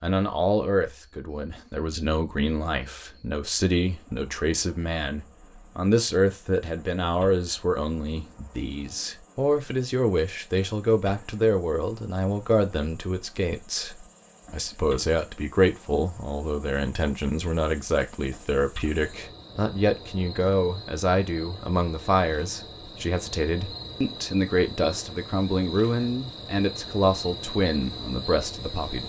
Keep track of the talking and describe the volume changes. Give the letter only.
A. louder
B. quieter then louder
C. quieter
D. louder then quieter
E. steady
E.